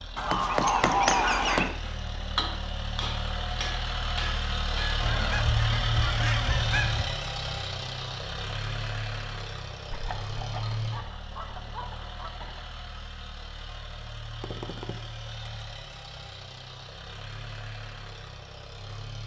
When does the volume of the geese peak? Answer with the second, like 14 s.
1 s.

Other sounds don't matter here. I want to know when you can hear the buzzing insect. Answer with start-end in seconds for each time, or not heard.
not heard.